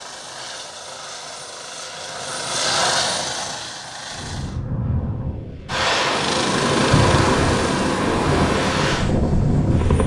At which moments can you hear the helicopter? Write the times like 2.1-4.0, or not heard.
0.0-4.6, 6.1-10.0.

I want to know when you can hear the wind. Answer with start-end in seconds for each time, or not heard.
4.1-10.0.